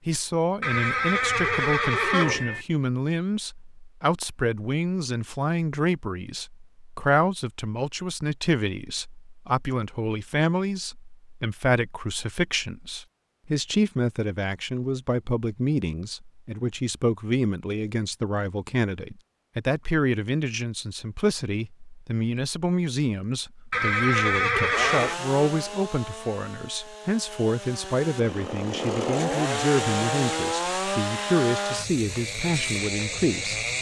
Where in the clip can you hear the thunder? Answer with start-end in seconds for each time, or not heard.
not heard.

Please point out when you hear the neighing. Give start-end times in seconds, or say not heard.
0.6-2.6, 23.7-25.1.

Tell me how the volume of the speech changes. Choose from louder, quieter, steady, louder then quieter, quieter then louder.
steady.